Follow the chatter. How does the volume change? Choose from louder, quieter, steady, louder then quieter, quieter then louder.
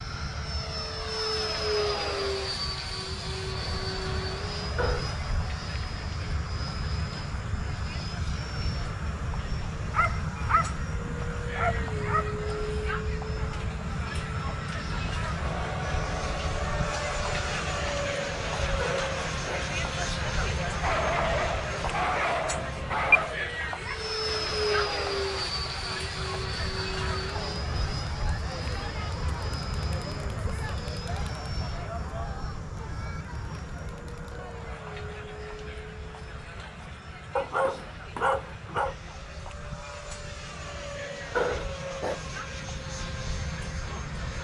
louder then quieter.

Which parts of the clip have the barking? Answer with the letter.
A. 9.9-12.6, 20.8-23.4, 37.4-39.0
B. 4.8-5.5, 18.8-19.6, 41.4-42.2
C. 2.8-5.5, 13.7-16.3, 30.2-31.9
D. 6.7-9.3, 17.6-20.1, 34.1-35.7
A.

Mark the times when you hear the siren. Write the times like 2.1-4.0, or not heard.
not heard.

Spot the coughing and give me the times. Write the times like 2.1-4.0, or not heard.
4.8-5.5, 18.8-19.6, 41.4-42.2.